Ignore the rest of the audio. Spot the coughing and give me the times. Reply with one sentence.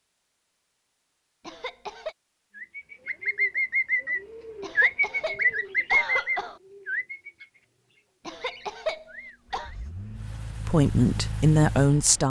You can hear the coughing from 1.4 to 2.1 s, from 4.6 to 6.6 s and from 8.2 to 9.7 s.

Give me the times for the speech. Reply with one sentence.
The speech can be heard from 10.7 to 12.2 s.